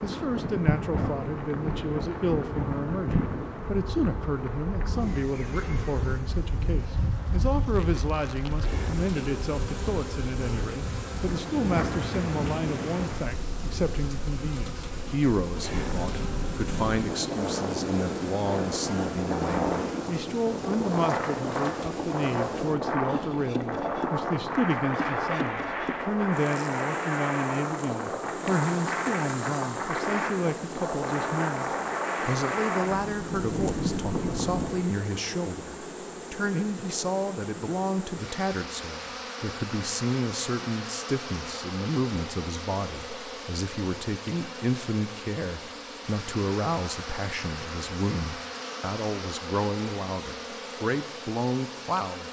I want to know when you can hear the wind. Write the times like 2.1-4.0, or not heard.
0.0-34.8.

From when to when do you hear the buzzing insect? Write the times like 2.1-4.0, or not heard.
0.0-52.2.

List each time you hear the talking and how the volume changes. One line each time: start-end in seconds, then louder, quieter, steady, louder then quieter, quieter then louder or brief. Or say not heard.
0.0-52.2 steady.